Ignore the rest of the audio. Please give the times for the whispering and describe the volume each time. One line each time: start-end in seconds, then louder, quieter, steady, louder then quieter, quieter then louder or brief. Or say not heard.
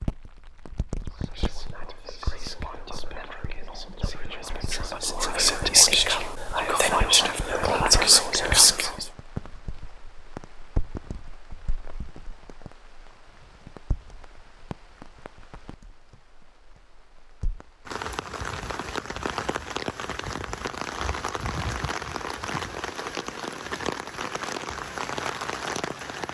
1.1-9.1 louder.